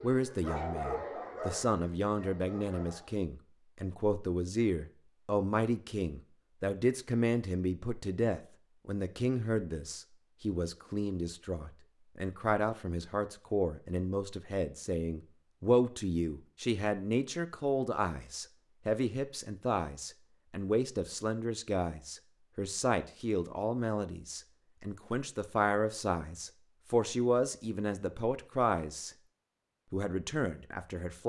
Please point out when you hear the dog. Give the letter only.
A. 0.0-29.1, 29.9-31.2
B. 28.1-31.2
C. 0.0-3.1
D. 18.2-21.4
C.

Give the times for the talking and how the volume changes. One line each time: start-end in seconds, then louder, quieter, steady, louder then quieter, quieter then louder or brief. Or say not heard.
0.0-29.1 steady
29.9-31.2 brief.